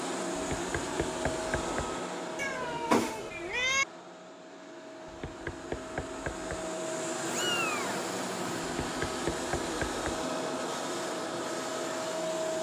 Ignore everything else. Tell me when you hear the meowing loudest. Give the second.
3 s.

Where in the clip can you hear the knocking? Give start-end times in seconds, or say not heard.
0.3-1.9, 5.0-6.7, 8.7-10.2.